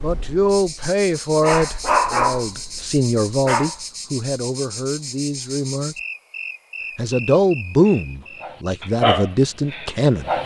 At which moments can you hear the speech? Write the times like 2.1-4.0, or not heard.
0.0-6.0, 7.0-10.3.